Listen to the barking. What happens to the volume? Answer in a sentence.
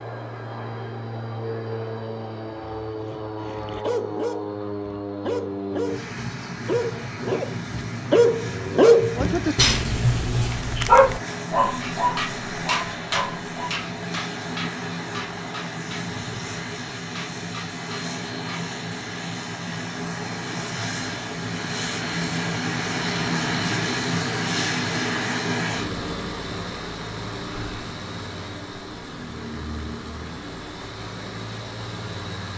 The loudness of the barking goes up, then down.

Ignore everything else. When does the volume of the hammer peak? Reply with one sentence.
The volume of the hammer peaks at 13 seconds.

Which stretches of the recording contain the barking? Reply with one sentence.
The barking can be heard from 2.8 to 13.8 s.